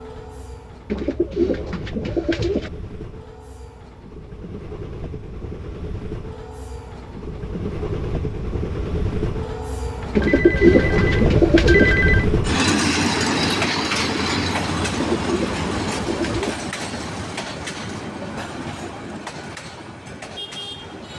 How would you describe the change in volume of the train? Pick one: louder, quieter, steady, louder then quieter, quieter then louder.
louder then quieter.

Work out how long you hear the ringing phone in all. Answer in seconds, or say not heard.
2 s.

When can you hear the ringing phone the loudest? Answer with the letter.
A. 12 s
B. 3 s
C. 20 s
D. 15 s
A.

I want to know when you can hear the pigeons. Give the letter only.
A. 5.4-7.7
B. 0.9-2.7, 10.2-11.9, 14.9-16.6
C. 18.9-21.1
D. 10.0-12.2
B.